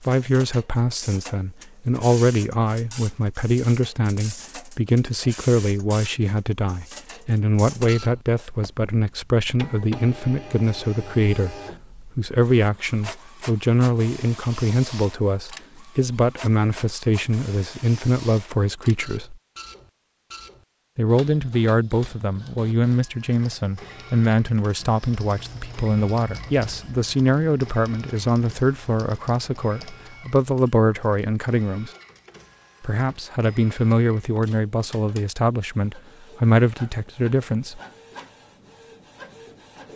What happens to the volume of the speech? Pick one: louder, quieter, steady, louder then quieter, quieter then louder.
steady.